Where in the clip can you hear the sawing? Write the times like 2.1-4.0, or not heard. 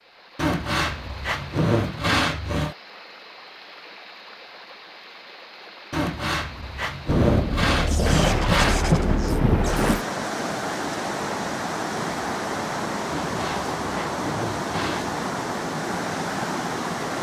0.3-2.8, 5.9-8.8, 13.1-15.2.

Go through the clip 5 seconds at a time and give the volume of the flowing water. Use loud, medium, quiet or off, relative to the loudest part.
quiet, medium, loud, loud.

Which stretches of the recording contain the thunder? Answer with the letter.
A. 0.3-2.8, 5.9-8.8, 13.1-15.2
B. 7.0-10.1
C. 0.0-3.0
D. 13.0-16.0
B.